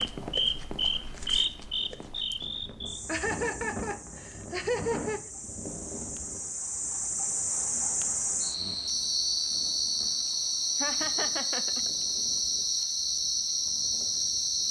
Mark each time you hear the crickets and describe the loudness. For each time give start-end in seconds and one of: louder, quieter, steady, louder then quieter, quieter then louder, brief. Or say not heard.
0.0-14.6 quieter then louder.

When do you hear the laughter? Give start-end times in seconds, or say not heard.
3.0-5.2, 10.8-11.9.